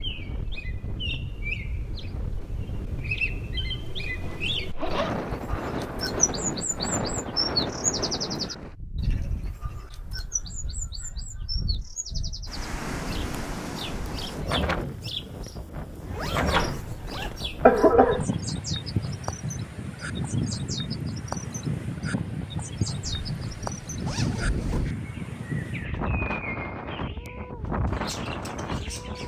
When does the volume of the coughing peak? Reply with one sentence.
The volume of the coughing peaks at 18 seconds.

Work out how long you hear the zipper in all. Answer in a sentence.
The zipper can be heard for 4 seconds in total.